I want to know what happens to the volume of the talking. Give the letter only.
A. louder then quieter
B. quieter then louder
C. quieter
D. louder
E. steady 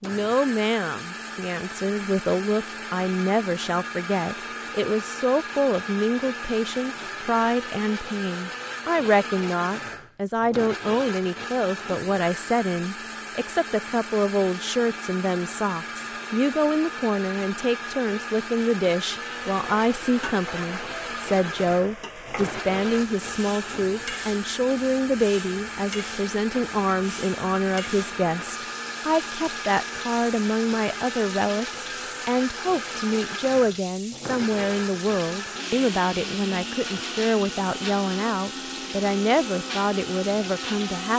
E.